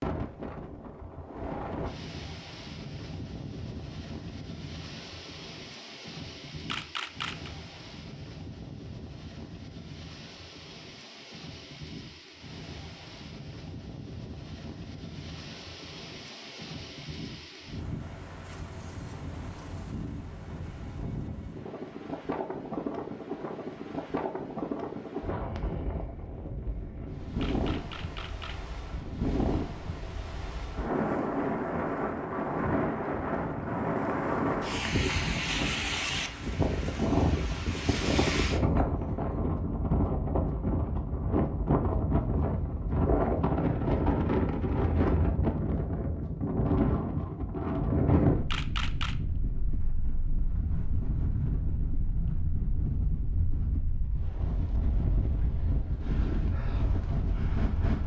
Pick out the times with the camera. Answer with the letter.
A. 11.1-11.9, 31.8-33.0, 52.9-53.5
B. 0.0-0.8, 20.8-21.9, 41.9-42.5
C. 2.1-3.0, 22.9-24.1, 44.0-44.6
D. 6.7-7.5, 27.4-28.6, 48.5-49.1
D.